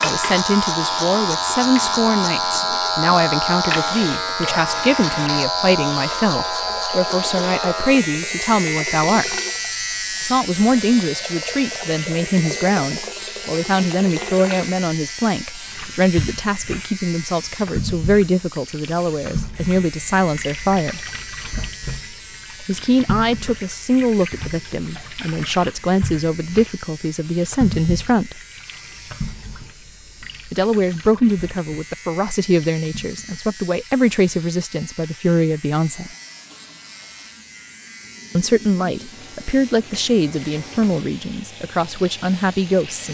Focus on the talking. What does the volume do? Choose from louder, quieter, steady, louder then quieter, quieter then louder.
steady.